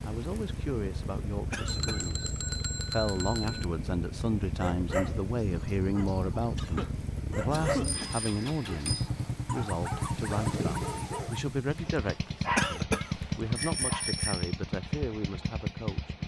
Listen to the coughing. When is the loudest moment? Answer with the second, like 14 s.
13 s.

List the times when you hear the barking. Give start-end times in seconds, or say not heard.
4.5-14.1.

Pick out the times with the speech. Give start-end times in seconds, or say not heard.
0.0-2.2, 2.9-16.1.